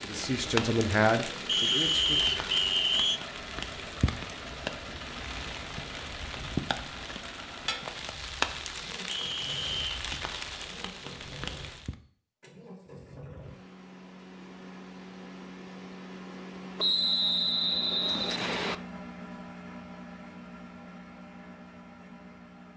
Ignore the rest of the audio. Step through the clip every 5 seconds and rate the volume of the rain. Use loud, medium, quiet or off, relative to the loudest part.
loud, loud, loud, off, off.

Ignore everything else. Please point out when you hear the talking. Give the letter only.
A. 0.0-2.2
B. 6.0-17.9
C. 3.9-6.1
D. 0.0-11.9
A.